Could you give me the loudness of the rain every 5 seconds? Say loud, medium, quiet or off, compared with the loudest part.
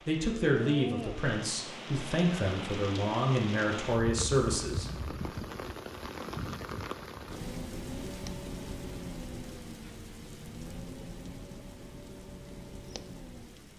loud, loud, medium.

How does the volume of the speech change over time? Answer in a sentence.
The volume of the speech goes down, then up.